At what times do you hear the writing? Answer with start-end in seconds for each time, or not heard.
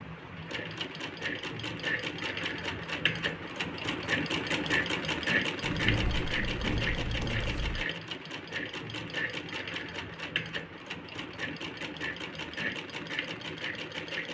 5.6-7.8.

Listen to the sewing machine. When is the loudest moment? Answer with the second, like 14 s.
5 s.